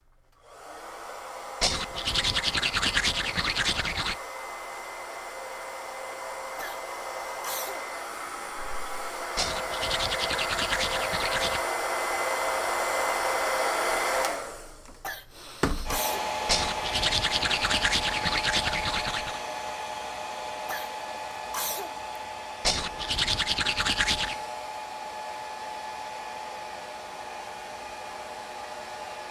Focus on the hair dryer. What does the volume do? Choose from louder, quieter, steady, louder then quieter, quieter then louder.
louder then quieter.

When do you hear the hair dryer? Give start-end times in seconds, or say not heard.
0.1-29.2.